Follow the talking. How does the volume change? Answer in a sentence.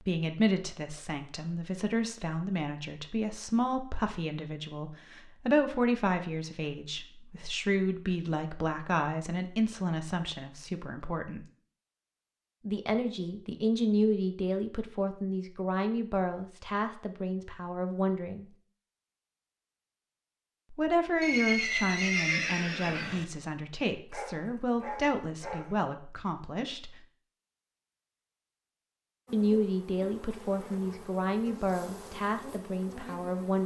The volume of the talking stays about the same.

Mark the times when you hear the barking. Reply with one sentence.
The barking can be heard from 24.1 to 25.8 s.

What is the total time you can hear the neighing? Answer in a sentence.
The neighing can be heard for 2 seconds in total.